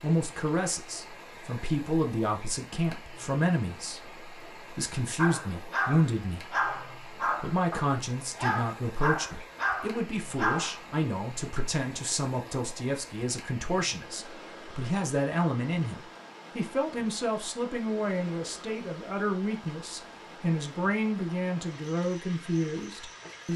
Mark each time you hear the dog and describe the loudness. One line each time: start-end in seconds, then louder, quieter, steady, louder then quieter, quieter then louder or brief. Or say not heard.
5.2-10.8 quieter then louder.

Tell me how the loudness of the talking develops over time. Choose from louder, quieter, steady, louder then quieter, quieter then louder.
steady.